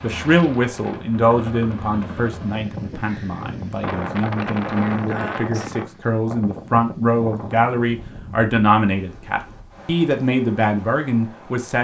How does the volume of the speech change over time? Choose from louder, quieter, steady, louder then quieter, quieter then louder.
quieter then louder.